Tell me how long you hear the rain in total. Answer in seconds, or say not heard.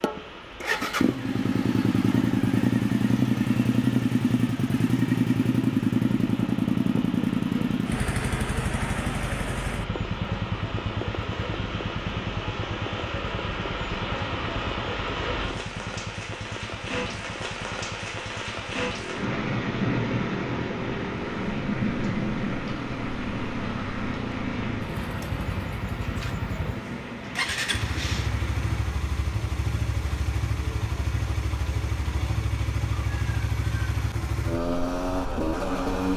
29 s.